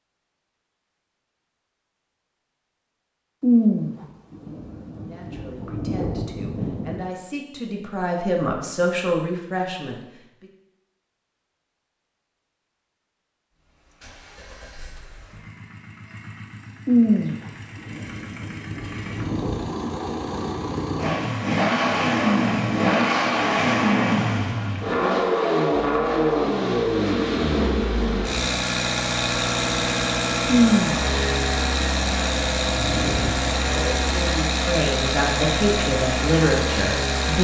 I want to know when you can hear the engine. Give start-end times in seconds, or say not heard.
13.7-37.3.